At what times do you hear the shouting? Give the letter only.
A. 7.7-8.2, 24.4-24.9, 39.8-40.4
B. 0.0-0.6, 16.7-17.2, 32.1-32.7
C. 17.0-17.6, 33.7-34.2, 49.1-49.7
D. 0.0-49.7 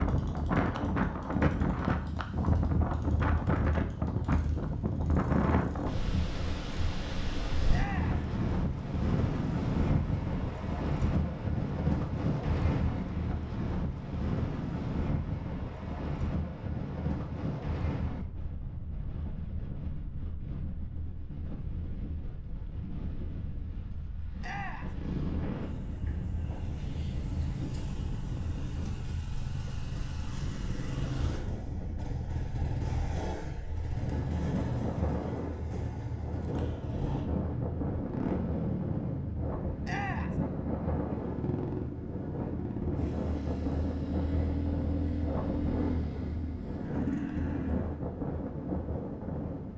A.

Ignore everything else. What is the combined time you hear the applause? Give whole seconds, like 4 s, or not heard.
not heard.